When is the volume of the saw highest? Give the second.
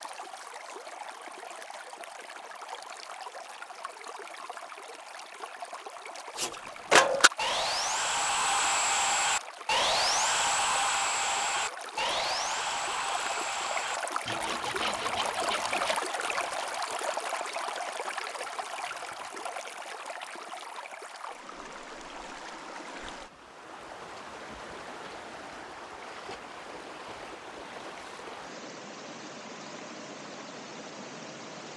7 s.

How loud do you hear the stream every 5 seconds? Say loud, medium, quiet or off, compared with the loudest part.
medium, medium, loud, loud, medium, medium, medium.